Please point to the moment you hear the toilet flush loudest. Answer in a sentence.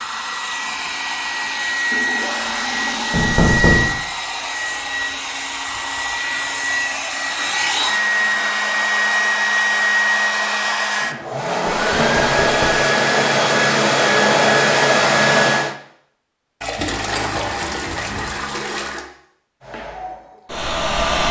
The loudest moment of the toilet flush is at 17 seconds.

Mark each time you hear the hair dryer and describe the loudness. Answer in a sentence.
The hair dryer can be heard from 0.0 to 15.8 s, getting louder; and briefly from 19.6 to 21.2 s.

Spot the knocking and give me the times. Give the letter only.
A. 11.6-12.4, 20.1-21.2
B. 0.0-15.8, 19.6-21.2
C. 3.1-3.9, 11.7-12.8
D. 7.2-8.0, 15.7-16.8
C.